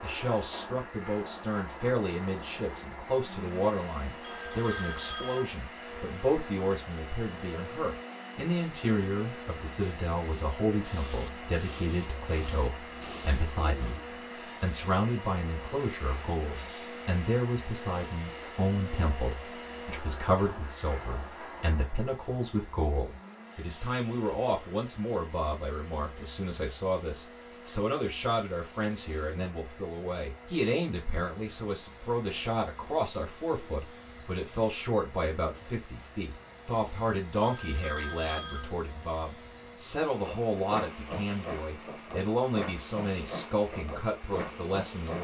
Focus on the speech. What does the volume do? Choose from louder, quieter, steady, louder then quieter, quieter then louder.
steady.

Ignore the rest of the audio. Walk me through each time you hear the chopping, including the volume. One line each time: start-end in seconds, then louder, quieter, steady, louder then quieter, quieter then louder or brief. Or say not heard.
not heard.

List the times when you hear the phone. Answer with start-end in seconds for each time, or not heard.
4.2-5.5, 37.4-38.8.